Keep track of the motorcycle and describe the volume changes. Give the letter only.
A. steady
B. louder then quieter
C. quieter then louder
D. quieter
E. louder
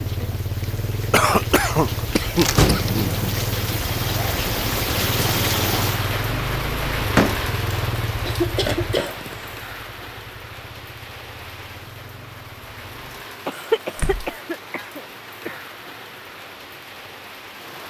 D.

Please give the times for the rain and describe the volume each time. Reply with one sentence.
The rain can be heard from 0.0 to 17.8 s, getting louder then quieter.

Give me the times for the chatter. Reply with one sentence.
You can't hear the chatter here.